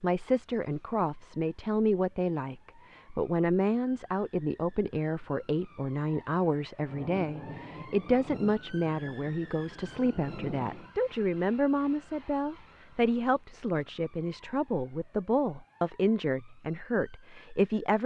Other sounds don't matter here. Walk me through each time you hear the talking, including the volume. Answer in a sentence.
The talking can be heard from 0.0 to 18.0 s, at a steady volume.